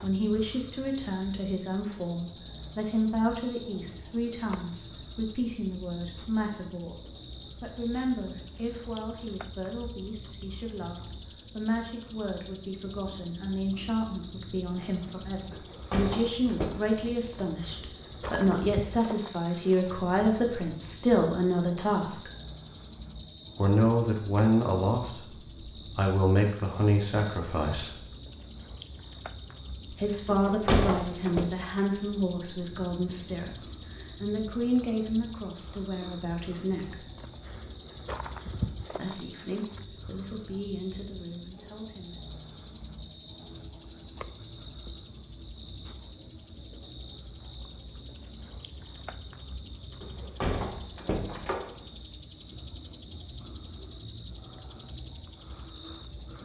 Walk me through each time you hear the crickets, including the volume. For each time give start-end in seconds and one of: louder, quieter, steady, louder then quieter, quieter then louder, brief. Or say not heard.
0.0-56.4 steady.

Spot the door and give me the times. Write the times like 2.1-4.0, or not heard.
15.5-16.7, 30.2-31.4, 50.0-51.7.